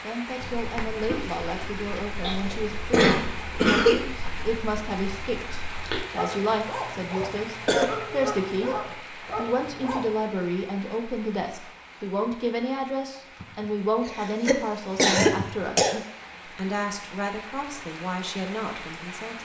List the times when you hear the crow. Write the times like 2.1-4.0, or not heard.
not heard.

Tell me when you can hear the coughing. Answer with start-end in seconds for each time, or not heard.
2.2-4.0, 7.2-7.9, 14.1-16.0.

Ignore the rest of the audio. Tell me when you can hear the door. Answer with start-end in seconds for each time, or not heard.
not heard.